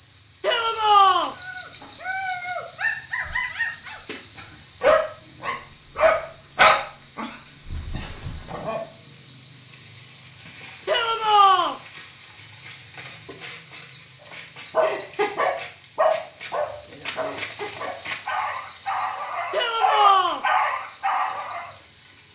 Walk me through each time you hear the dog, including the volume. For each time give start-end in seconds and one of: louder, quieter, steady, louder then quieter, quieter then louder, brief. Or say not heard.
1.4-8.8 louder then quieter
14.7-21.7 quieter then louder.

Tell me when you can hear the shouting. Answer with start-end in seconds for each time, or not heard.
0.4-1.4, 10.8-11.8, 19.5-20.4.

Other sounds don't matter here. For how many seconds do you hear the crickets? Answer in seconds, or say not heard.
22 s.